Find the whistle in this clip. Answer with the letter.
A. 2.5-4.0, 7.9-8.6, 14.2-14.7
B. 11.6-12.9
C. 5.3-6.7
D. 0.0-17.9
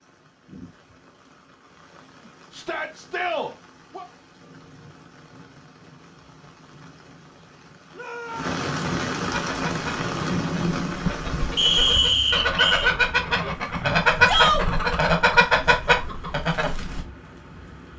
B.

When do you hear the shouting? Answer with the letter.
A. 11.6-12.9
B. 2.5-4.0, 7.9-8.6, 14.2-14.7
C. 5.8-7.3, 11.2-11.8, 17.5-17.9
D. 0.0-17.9
B.